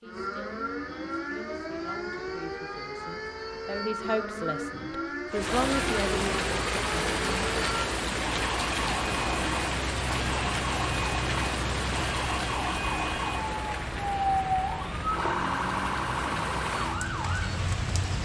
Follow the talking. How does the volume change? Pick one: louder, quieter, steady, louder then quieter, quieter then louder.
louder.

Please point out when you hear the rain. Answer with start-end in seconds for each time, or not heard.
5.3-18.2.